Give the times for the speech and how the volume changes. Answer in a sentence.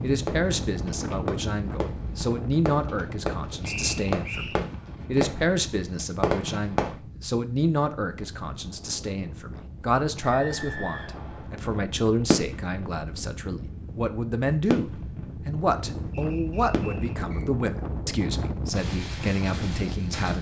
You can hear the speech from 0.0 to 20.3 s, at a steady volume.